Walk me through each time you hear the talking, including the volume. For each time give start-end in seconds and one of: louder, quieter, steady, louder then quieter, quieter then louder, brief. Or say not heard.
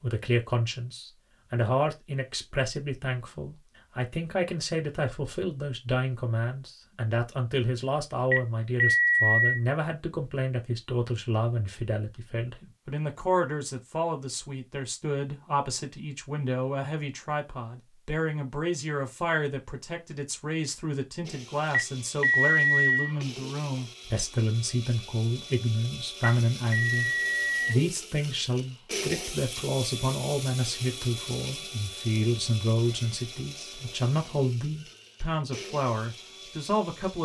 0.0-37.1 steady.